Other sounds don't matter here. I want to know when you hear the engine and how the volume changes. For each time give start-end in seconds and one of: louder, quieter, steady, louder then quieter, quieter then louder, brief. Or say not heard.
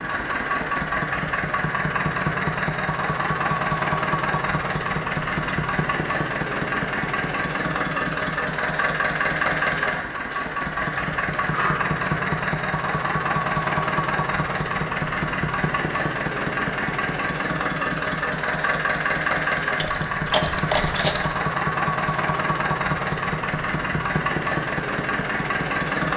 0.0-26.1 steady.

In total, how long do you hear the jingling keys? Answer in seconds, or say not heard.
6 s.